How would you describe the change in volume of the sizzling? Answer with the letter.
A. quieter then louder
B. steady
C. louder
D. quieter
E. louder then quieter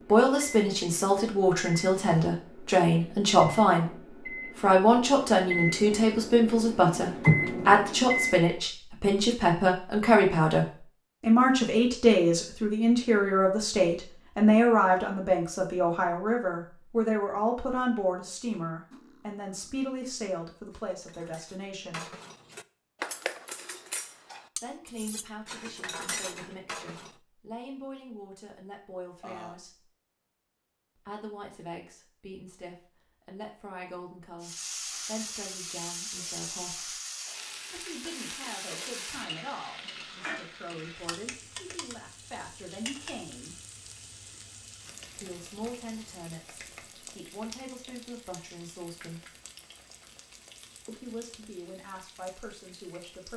D.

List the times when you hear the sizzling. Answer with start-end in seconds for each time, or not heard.
34.4-53.3.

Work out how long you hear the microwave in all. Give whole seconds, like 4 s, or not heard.
8 s.